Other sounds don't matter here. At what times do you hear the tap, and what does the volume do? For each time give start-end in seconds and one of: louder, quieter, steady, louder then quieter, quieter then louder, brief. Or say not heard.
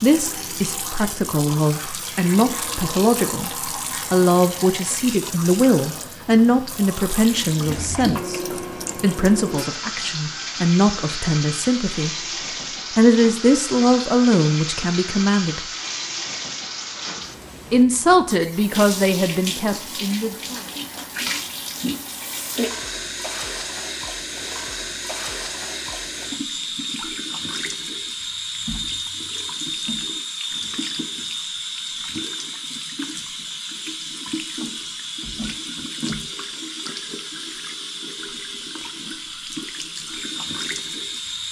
0.0-41.4 steady.